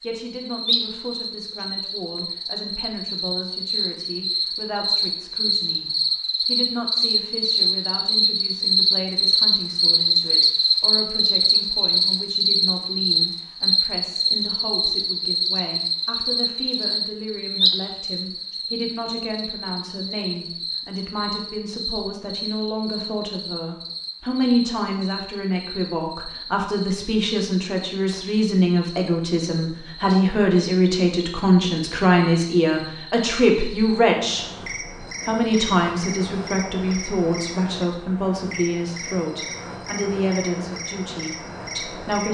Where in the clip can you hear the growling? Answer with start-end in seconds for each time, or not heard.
not heard.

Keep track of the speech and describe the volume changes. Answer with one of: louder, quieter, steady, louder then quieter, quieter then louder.
louder.